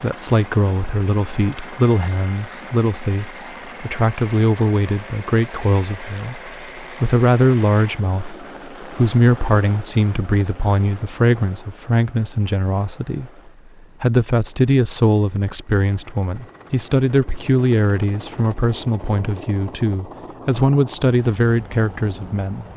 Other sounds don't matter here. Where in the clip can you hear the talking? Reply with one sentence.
The talking can be heard from 0.0 to 13.3 s and from 14.0 to 22.6 s.